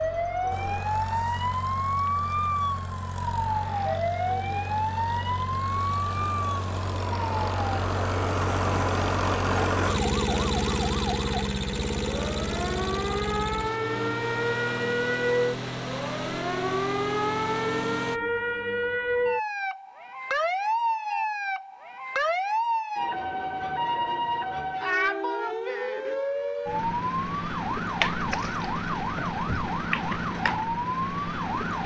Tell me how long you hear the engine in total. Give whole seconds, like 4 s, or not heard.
18 s.